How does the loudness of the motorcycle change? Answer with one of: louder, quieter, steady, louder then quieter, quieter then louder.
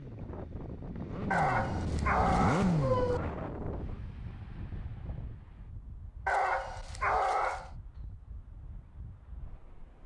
louder then quieter.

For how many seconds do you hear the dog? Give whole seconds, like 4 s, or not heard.
3 s.